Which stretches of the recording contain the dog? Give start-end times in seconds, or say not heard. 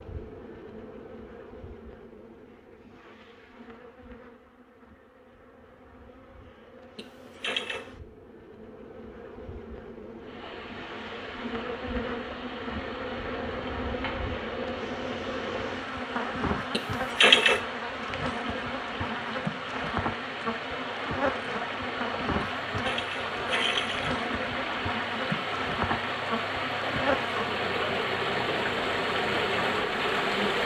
not heard.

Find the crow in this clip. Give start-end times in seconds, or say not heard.
not heard.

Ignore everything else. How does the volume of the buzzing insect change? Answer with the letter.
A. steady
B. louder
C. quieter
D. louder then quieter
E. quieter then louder
B.